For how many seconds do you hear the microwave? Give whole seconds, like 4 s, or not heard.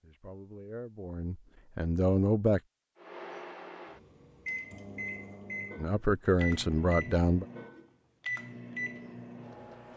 7 s.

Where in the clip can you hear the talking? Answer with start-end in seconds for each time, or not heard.
0.0-2.6, 5.8-7.5.